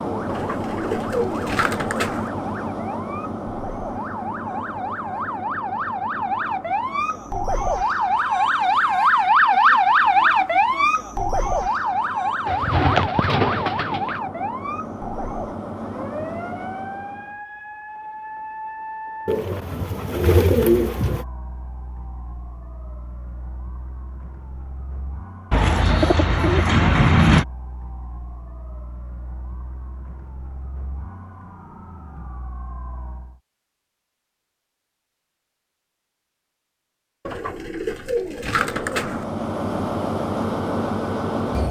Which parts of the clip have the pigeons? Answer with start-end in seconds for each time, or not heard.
0.2-2.3, 12.4-14.2, 19.2-21.2, 25.5-27.4, 37.2-39.2.